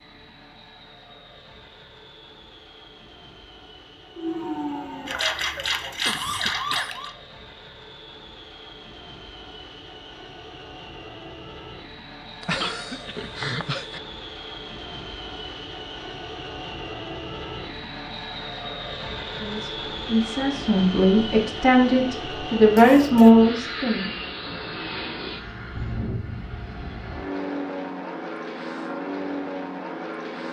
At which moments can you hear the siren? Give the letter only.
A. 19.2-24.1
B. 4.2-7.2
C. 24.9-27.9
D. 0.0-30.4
B.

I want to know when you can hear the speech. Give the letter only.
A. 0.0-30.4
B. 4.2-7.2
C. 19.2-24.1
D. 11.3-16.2
C.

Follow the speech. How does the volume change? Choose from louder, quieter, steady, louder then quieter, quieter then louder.
louder.